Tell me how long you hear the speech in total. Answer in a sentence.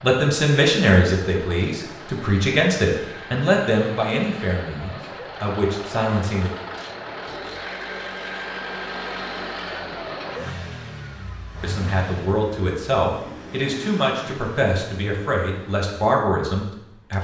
The speech can be heard for 12 seconds in total.